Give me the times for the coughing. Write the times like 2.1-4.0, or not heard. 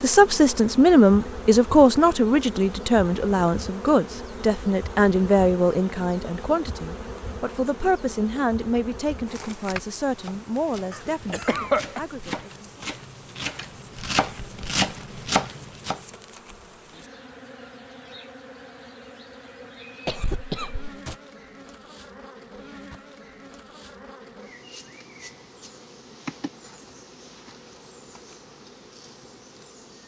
10.9-12.0, 20.1-21.1.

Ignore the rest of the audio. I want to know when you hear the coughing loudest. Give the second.
12 s.